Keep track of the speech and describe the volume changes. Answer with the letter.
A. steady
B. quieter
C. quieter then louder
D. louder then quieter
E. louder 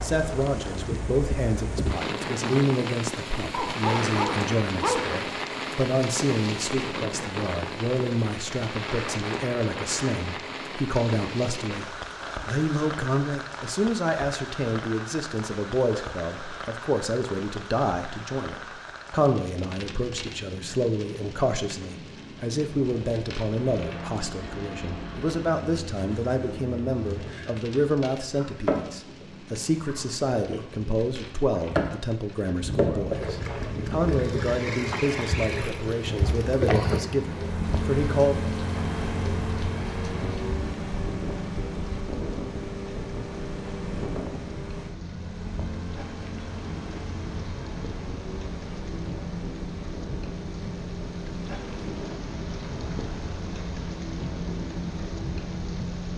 A.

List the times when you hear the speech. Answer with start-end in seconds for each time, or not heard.
0.0-38.5.